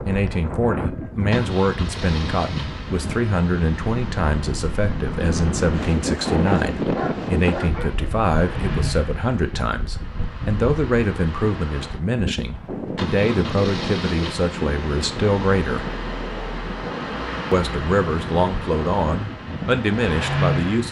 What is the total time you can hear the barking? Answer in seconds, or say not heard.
2 s.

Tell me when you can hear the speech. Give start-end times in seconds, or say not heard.
0.1-15.9, 17.5-20.8.